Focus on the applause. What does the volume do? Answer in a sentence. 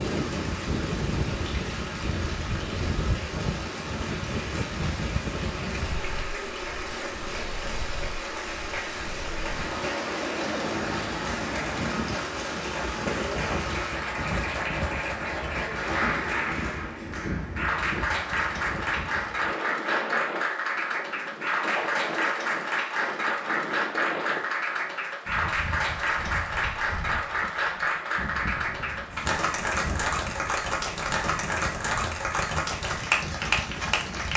The volume of the applause goes up.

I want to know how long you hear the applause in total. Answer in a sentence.
The applause can be heard for 34 seconds in total.